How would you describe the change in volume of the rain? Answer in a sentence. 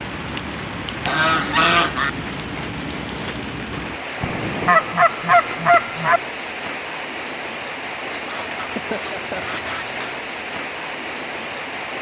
The volume of the rain stays about the same.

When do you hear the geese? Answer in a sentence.
You can hear the geese from 1.1 to 2.1 s, from 4.2 to 6.2 s and from 8.2 to 10.2 s.